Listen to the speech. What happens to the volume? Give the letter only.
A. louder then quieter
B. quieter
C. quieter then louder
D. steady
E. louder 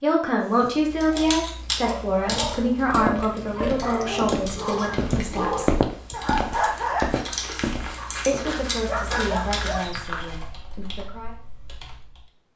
B.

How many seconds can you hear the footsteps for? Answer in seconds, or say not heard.
7 s.